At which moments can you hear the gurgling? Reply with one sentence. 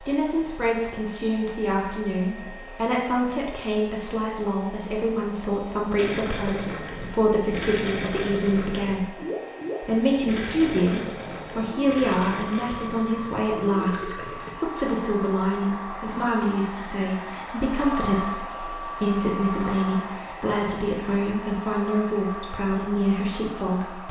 You can hear the gurgling from 6.0 to 14.5 s.